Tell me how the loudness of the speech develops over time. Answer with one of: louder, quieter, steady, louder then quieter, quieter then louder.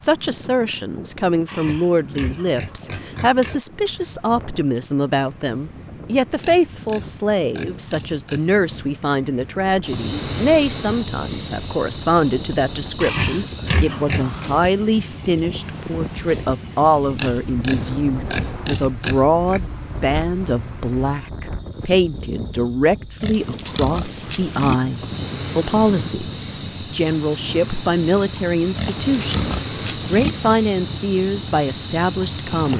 steady.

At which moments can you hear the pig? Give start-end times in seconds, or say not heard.
1.4-3.6, 6.4-8.6, 13.0-14.5, 17.1-19.6, 23.2-24.8, 28.8-30.4.